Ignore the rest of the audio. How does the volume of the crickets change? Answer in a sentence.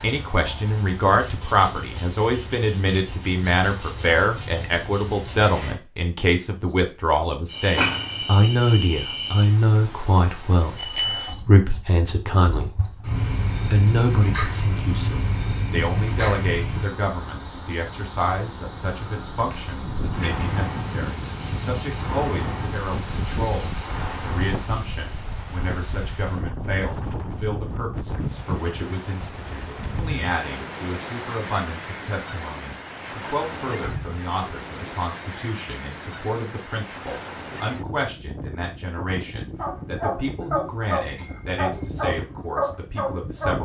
The loudness of the crickets stays about the same.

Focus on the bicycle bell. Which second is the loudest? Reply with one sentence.
The volume of the bicycle bell peaks at 11 seconds.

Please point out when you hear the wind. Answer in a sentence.
The wind can be heard from 19.8 to 43.6 s.